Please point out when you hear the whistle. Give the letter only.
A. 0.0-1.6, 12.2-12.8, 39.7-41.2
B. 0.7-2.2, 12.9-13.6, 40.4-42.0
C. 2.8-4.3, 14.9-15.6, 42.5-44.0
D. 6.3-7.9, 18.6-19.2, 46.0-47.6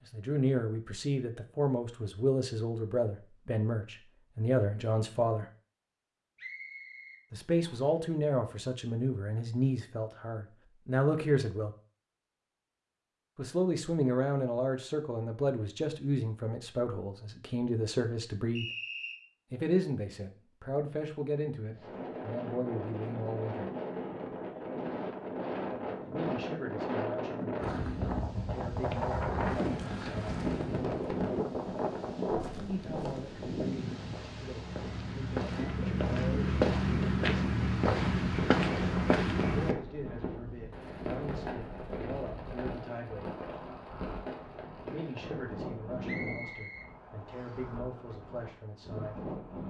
D.